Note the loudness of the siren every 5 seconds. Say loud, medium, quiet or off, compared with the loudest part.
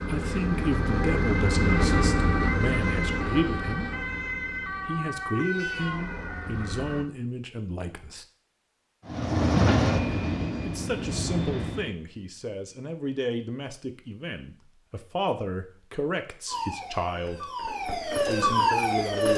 loud, medium, off, loud.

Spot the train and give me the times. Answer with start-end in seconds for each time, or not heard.
9.1-11.9.